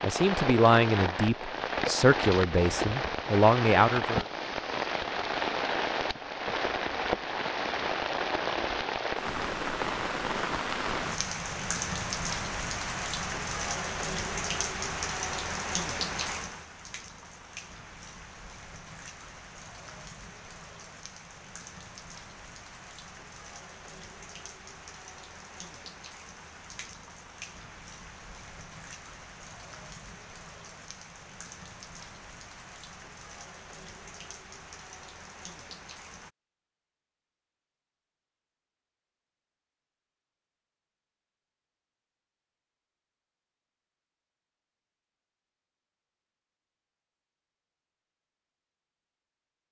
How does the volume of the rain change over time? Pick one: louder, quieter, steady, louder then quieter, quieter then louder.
quieter.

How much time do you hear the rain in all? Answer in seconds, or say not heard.
36 s.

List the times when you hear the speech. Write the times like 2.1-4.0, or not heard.
0.0-4.2.